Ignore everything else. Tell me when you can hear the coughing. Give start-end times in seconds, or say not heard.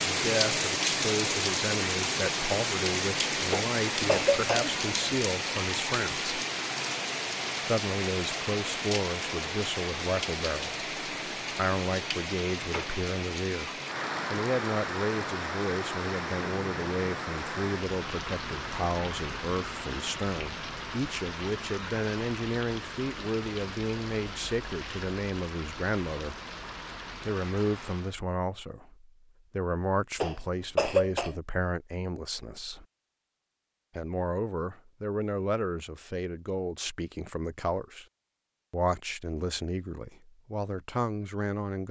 3.5-4.8, 30.2-31.4.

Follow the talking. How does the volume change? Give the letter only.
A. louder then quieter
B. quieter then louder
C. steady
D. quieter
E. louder
C.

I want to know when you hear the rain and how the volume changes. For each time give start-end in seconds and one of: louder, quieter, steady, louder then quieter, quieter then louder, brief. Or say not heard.
0.0-28.1 quieter.